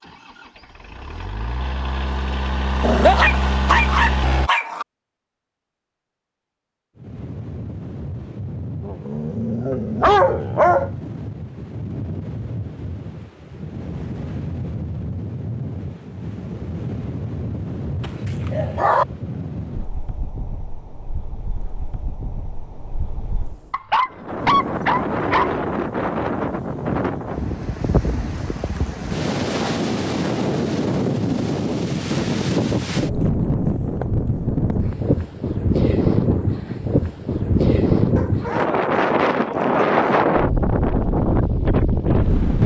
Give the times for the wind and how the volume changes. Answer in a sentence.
You can hear the wind from 7.0 to 42.6 s, getting louder.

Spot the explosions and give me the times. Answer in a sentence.
The explosions can't be heard in this clip.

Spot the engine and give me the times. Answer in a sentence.
You can hear the engine from 0.0 to 4.5 s.